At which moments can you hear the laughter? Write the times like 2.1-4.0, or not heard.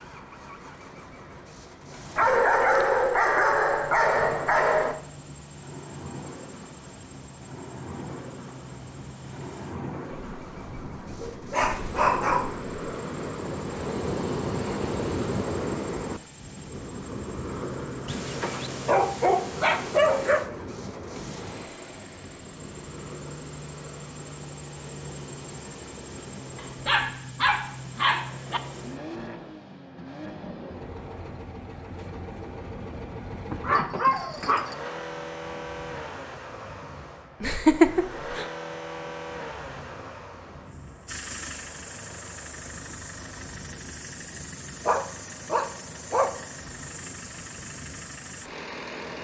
37.4-38.5.